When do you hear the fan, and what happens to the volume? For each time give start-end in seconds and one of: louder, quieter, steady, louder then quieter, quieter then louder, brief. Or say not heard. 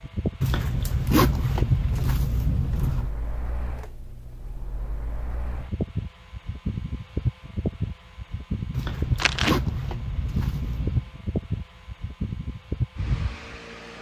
0.0-13.9 quieter then louder.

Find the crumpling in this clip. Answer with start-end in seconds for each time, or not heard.
9.2-9.6.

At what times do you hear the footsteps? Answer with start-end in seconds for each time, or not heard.
not heard.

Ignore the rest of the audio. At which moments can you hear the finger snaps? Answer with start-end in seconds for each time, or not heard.
not heard.